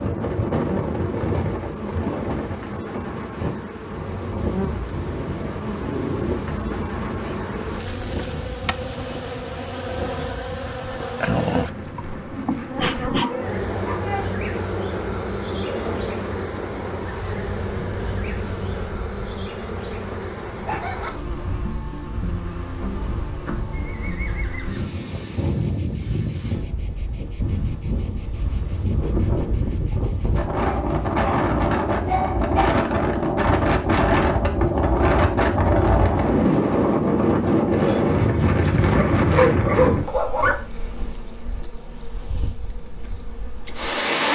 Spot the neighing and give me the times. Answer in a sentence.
You can hear the neighing from 23.8 to 24.9 s.